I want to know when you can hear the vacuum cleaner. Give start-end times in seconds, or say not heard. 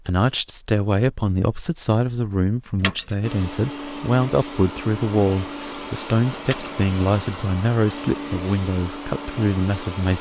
3.2-10.1.